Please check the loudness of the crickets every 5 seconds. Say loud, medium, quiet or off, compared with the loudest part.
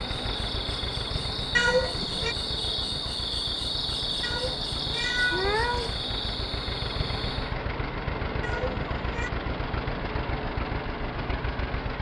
loud, loud, off.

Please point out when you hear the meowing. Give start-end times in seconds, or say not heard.
1.6-2.4, 4.2-5.9, 8.4-9.3.